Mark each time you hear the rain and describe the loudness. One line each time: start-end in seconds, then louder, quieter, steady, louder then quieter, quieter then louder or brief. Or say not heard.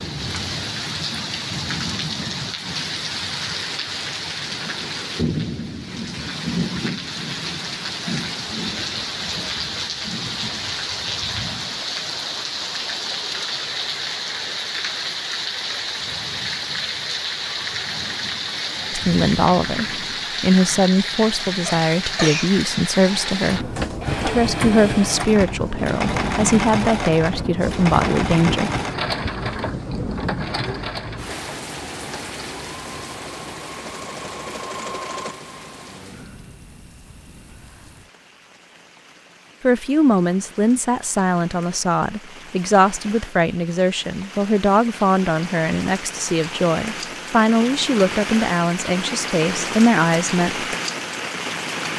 0.0-51.9 quieter then louder.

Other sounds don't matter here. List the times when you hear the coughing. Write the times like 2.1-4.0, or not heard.
21.6-22.5.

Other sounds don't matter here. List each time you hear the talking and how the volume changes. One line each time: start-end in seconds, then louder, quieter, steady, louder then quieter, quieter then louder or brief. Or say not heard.
18.9-28.7 steady
39.6-50.6 steady.